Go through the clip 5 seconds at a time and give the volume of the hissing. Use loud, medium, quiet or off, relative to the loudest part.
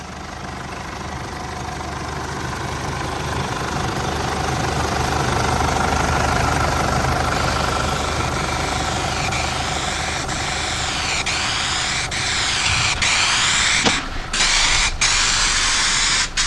off, medium, loud, loud.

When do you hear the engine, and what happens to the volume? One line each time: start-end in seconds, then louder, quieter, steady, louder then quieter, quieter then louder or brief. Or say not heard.
0.0-16.4 louder then quieter.